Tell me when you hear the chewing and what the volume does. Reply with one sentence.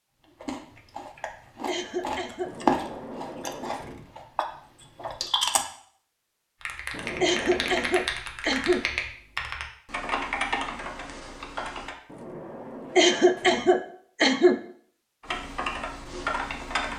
The chewing can be heard from 0.4 to 5.7 s, getting louder then quieter.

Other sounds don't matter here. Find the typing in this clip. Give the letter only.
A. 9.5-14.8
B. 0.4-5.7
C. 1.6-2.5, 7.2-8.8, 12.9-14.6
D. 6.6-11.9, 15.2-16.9
D.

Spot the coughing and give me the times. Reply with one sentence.
The coughing can be heard from 1.6 to 2.5 s, from 7.2 to 8.8 s and from 12.9 to 14.6 s.